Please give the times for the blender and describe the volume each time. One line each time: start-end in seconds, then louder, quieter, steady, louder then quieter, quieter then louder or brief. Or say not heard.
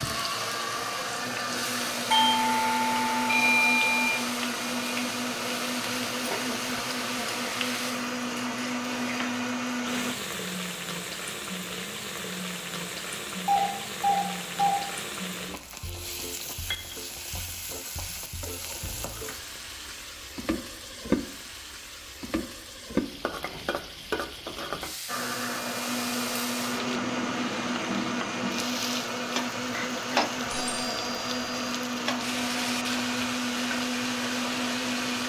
0.0-10.2 steady
25.1-35.2 steady.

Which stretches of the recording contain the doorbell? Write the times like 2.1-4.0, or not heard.
2.1-4.1, 13.4-14.8, 30.5-31.6.